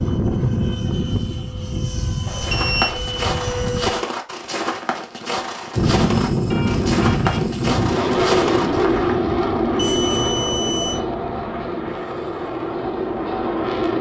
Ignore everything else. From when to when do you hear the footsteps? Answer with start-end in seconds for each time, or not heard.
2.4-9.2.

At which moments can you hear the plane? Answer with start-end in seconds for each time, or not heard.
0.0-4.0, 5.8-13.9.